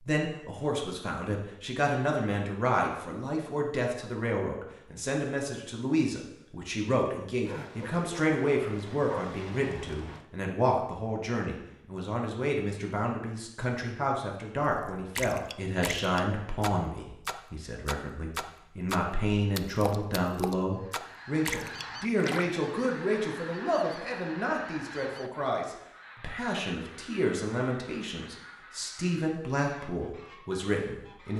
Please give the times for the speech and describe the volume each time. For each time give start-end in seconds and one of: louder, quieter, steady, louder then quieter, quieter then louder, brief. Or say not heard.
0.0-31.3 steady.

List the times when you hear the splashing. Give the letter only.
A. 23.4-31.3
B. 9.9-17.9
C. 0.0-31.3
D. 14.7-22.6
D.